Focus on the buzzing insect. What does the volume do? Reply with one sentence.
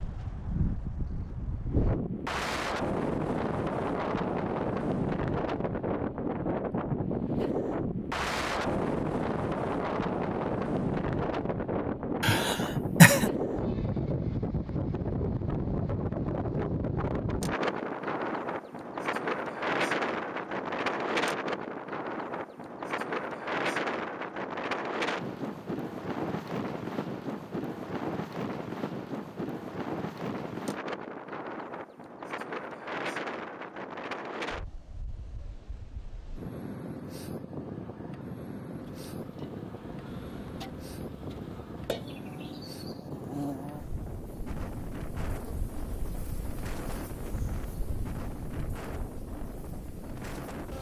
The volume of the buzzing insect goes up, then down.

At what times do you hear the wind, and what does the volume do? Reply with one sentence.
The wind can be heard from 0.0 to 50.7 s, getting quieter.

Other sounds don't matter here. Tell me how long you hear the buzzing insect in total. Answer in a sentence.
The buzzing insect can be heard for 12 seconds in total.